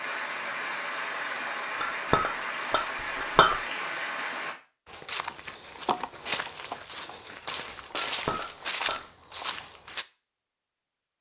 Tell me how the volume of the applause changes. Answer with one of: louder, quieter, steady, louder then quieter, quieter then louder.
steady.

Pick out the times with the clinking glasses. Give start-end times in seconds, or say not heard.
1.8-3.6, 8.0-8.9.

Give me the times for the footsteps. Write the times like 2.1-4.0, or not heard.
4.8-10.1.